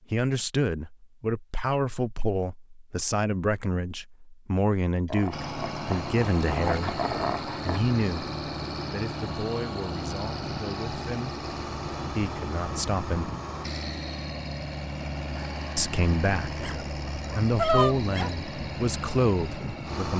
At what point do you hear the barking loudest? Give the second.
18 s.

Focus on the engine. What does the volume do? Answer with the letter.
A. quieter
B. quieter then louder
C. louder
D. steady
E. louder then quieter
D.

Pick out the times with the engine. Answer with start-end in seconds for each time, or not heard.
5.3-20.1.